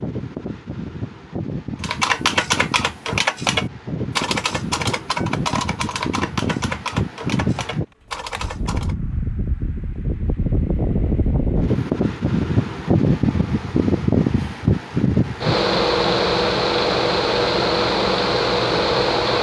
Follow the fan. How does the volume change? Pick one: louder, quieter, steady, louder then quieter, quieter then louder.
louder.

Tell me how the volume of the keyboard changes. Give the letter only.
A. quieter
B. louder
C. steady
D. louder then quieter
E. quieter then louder
A.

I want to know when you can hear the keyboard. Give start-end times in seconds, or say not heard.
1.8-8.9.